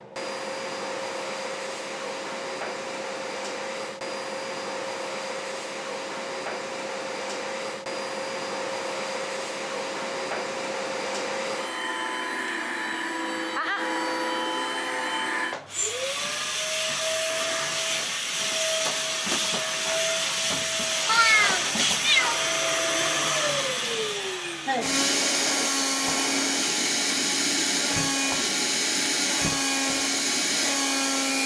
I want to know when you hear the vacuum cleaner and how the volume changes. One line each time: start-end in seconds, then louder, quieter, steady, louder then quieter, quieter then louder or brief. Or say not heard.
0.0-31.4 louder.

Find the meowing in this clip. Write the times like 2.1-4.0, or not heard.
21.1-23.1.